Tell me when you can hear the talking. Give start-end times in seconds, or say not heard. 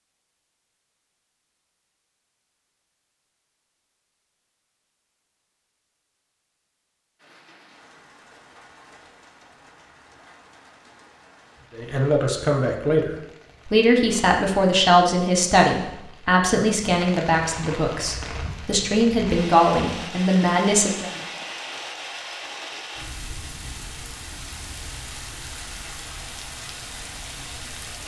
11.8-21.1.